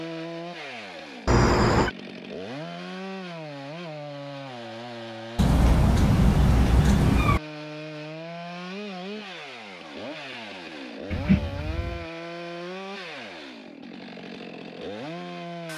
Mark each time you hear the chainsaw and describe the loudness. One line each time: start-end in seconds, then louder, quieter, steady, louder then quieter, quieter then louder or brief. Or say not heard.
0.0-15.7 steady.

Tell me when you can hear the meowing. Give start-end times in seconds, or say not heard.
1.2-1.9, 5.3-7.4, 11.1-12.1.